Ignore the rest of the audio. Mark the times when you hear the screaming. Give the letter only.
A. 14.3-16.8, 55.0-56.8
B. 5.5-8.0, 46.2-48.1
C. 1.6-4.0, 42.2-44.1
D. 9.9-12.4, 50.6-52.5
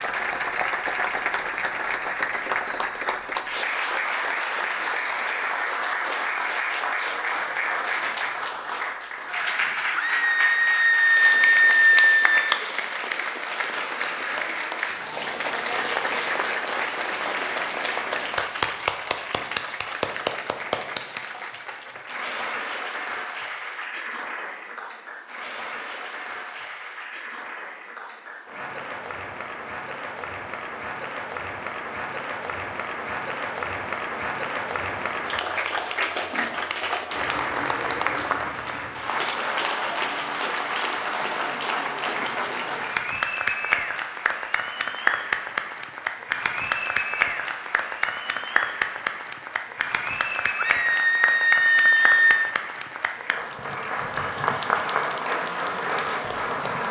D.